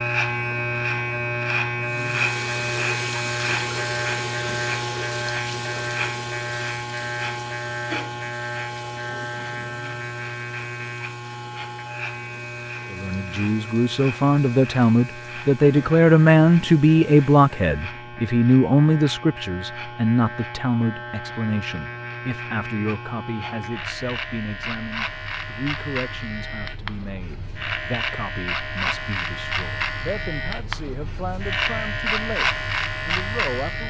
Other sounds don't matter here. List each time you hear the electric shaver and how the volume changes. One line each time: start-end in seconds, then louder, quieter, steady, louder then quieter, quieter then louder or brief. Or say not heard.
0.0-33.8 quieter then louder.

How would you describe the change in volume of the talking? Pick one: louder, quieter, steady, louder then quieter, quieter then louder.
quieter.